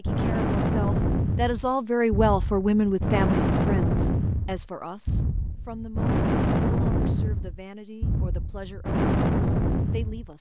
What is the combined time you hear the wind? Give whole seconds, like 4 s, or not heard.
10 s.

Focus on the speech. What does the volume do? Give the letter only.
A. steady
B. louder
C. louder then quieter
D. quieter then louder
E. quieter
E.